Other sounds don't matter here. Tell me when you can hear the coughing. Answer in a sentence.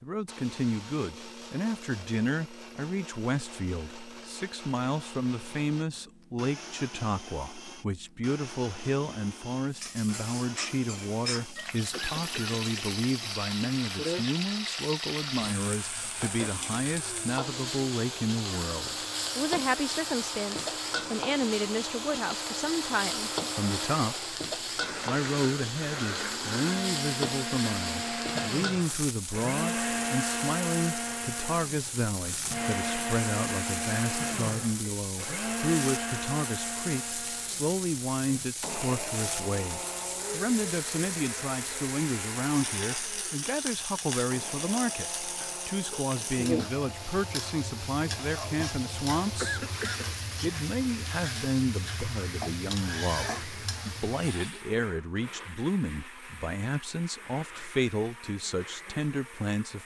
The coughing can be heard from 11.9 to 12.8 s and from 49.4 to 50.1 s.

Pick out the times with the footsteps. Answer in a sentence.
You can't hear the footsteps here.